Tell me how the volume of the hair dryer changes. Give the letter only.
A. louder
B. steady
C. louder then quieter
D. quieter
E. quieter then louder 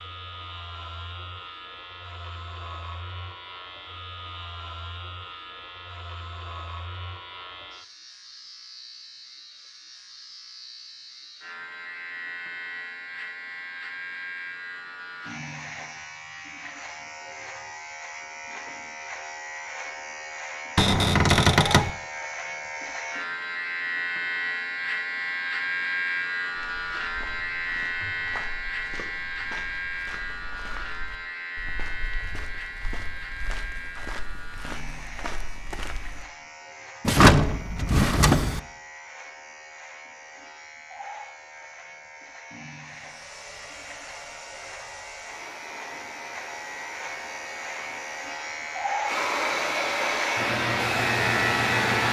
A.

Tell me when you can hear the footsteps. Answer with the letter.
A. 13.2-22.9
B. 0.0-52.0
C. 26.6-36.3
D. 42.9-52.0
C.